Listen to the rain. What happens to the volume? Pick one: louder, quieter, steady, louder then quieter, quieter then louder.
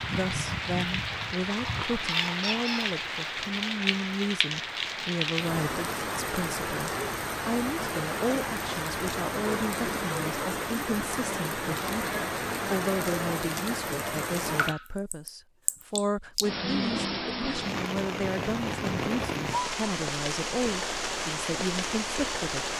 steady.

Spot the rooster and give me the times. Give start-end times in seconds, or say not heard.
1.3-3.0.